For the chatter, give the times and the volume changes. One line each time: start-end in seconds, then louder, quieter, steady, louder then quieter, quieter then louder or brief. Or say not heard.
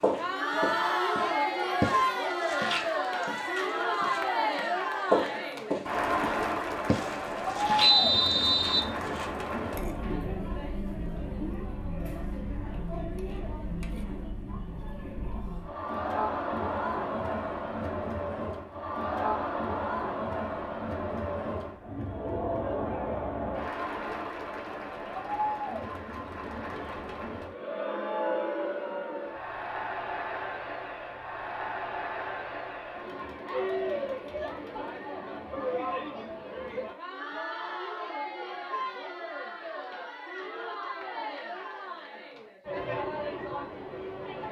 0.0-44.4 quieter.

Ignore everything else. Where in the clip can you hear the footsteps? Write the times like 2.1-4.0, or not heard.
0.0-9.2.